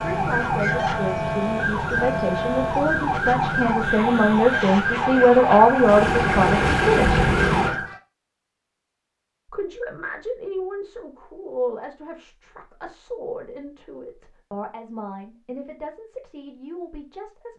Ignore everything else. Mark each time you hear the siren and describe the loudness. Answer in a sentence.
The siren can be heard from 0.0 to 8.0 s, at a steady volume.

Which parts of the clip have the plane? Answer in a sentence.
You can hear the plane from 0.0 to 7.8 s.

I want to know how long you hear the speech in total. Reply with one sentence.
You can hear the speech for 15 seconds altogether.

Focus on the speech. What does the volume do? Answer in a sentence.
The volume of the speech goes up, then down.